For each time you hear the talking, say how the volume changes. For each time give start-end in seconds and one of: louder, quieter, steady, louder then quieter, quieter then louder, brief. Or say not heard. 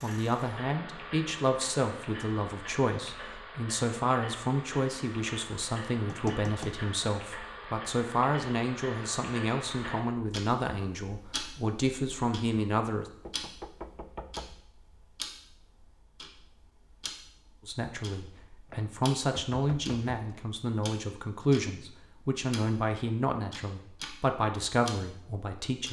0.0-13.1 steady
17.6-25.8 steady.